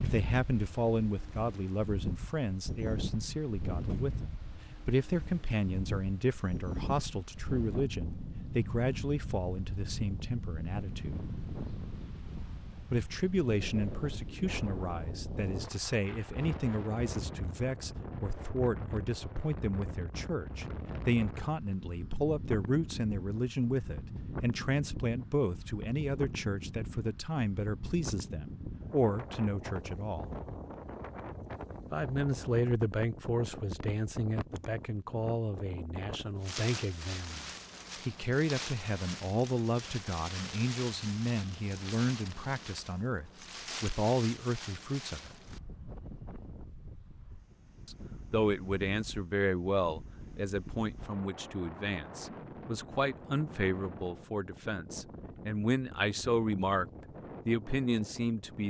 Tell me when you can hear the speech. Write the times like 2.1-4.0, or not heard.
0.0-11.2, 12.9-30.3, 31.9-45.4, 47.9-56.9, 57.5-58.6.